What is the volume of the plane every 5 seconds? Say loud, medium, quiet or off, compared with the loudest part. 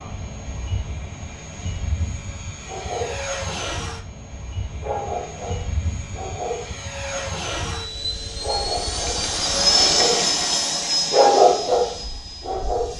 medium, loud, loud.